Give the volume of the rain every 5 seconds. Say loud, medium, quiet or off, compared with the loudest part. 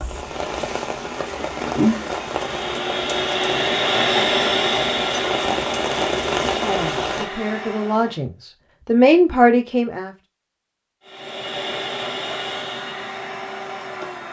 loud, loud, off.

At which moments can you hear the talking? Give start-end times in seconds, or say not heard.
6.5-10.1.